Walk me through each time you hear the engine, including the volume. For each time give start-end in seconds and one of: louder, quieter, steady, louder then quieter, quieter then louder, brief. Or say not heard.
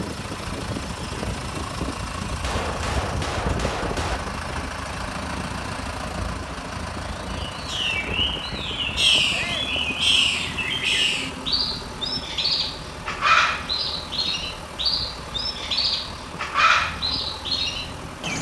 0.0-18.3 quieter.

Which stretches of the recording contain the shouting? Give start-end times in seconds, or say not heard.
9.3-9.8.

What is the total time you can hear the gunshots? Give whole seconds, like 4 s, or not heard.
2 s.